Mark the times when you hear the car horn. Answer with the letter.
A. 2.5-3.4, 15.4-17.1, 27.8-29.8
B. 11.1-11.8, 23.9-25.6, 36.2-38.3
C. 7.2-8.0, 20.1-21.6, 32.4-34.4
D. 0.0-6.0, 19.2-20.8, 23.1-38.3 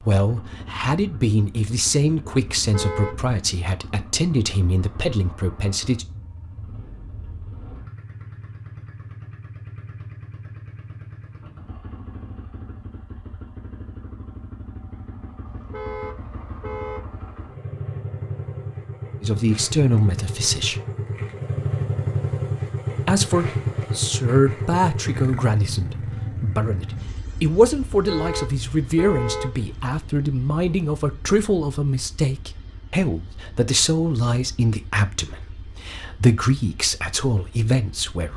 A.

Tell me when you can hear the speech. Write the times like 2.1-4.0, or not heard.
0.0-6.0, 19.2-20.8, 23.1-38.3.